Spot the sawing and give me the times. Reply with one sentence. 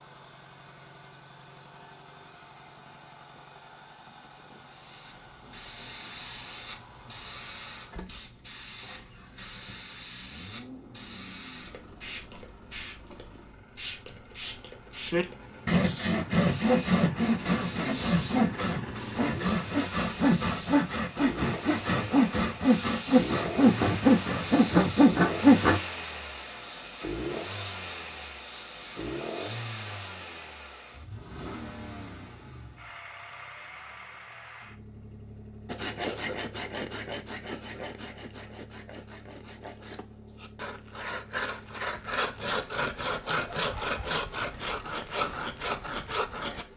The sawing can be heard from 15.1 to 25.8 s and from 35.6 to 46.6 s.